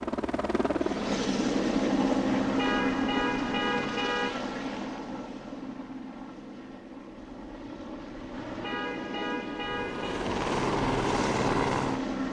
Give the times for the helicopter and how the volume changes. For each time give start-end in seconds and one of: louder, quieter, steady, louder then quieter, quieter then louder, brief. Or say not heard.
0.0-12.2 quieter then louder.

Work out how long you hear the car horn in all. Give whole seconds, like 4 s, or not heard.
4 s.